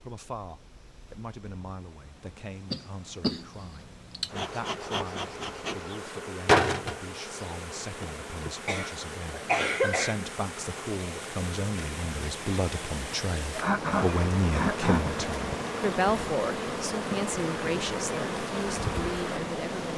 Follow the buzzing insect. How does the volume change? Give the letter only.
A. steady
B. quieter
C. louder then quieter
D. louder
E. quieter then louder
E.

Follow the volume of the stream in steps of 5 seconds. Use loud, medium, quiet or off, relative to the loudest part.
quiet, medium, loud, loud.